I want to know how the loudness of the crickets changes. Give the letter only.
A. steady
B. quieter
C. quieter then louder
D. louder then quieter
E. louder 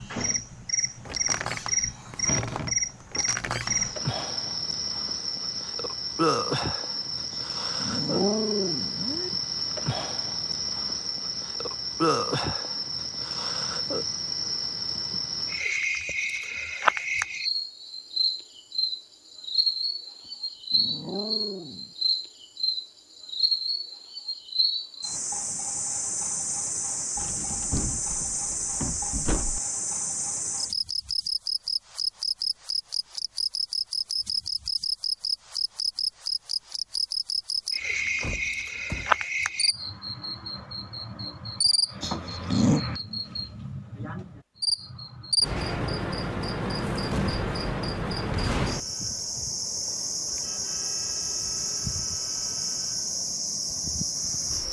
A.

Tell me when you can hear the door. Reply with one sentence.
You can hear the door from 1.1 to 3.8 s, from 27.1 to 29.6 s and from 37.9 to 39.2 s.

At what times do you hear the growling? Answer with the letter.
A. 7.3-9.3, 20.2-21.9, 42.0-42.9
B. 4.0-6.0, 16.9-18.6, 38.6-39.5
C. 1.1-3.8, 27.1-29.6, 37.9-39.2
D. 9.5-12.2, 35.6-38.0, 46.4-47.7
A.